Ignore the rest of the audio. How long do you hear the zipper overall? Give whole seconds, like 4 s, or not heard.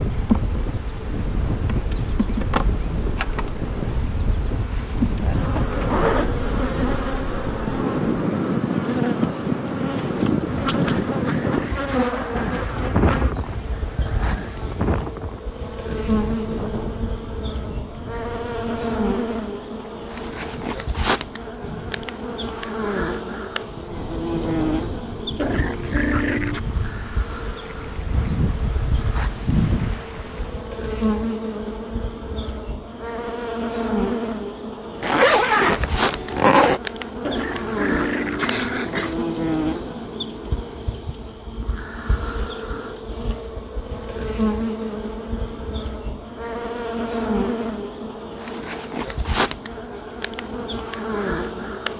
3 s.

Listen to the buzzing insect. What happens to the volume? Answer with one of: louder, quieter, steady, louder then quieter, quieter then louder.
steady.